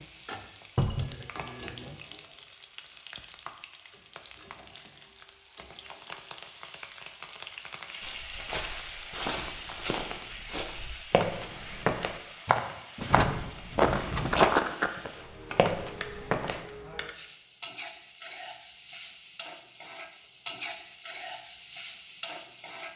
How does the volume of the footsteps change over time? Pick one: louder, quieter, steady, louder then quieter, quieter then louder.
louder then quieter.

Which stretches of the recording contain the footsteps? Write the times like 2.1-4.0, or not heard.
8.0-16.6.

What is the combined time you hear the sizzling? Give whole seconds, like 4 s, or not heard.
23 s.